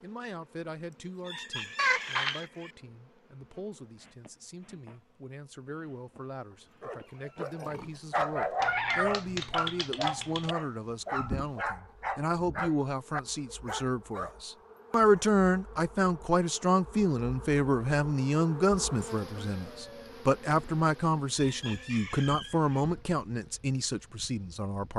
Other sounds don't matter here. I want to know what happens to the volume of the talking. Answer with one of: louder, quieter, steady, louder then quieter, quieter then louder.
louder.